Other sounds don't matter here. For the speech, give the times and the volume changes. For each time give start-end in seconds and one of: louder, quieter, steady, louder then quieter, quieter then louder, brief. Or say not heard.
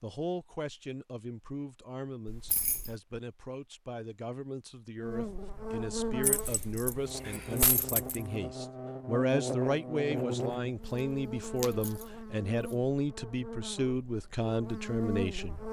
0.0-15.6 louder.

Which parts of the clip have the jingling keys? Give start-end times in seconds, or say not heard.
2.2-3.0, 6.2-8.3, 11.6-12.7.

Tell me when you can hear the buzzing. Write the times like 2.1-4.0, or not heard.
5.0-15.6.